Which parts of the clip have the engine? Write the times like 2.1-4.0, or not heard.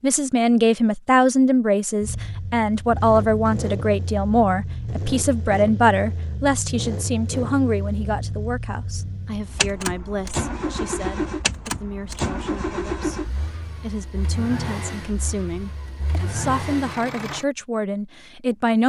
2.0-17.4.